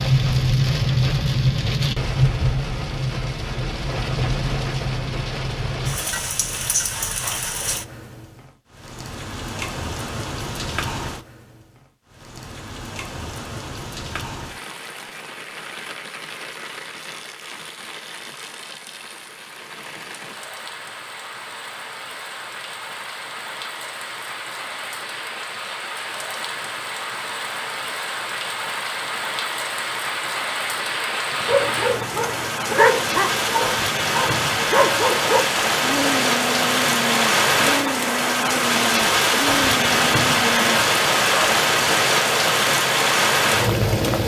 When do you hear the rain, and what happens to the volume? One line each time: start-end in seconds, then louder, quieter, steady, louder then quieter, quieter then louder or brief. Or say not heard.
0.0-44.2 quieter then louder.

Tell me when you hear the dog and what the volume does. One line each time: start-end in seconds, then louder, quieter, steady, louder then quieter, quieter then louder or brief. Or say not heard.
31.4-41.5 quieter.